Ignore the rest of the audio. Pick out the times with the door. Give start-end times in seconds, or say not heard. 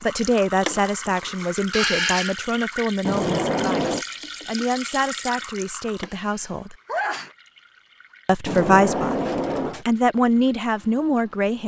3.0-4.0, 8.4-9.8.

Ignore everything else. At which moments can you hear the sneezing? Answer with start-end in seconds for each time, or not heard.
1.7-2.4, 6.0-7.3.